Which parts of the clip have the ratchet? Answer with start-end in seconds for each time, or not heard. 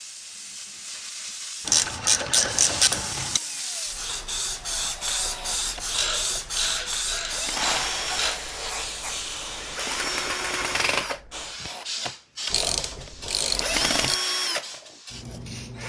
1.6-3.4, 5.8-8.4, 12.5-14.2.